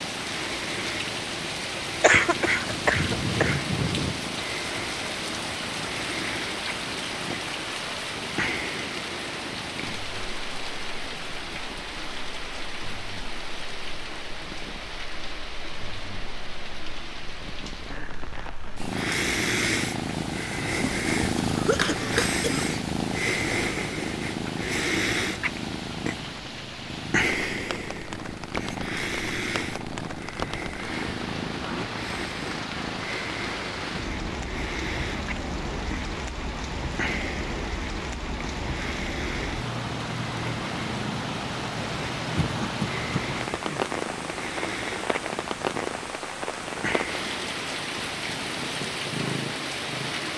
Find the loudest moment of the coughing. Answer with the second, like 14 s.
2 s.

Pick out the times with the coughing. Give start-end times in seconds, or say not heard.
2.0-4.2, 20.7-22.7, 42.4-43.9.